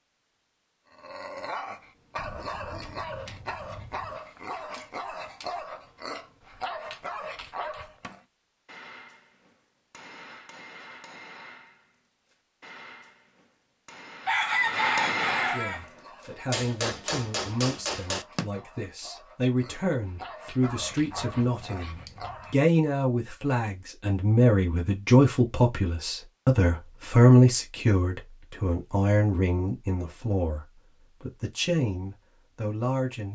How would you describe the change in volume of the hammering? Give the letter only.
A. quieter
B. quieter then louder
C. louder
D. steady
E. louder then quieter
C.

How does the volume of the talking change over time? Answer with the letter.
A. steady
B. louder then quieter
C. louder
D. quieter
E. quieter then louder
B.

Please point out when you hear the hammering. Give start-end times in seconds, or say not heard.
7.9-18.5.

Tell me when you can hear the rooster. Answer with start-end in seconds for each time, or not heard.
14.2-15.8.